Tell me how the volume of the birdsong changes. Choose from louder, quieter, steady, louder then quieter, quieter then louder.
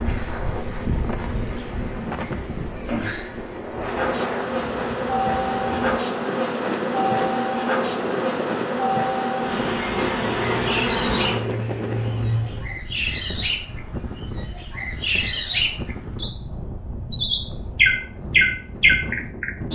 louder.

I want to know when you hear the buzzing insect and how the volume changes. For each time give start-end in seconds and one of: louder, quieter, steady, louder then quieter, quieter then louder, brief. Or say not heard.
0.0-12.8 louder.